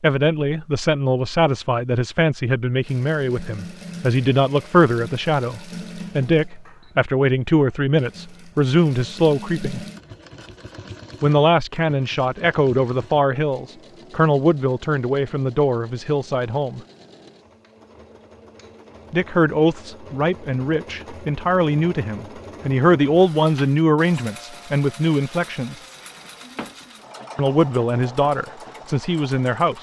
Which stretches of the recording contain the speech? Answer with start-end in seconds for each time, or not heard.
0.0-9.8, 11.2-16.8, 19.1-25.8, 27.4-29.7.